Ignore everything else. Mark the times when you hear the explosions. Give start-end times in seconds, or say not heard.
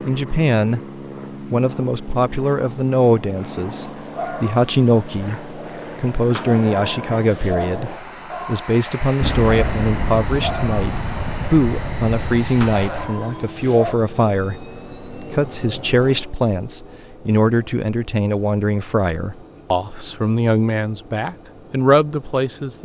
9.2-13.1.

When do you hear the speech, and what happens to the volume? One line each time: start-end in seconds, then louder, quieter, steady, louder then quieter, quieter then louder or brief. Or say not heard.
0.1-0.8 brief
1.5-22.7 steady.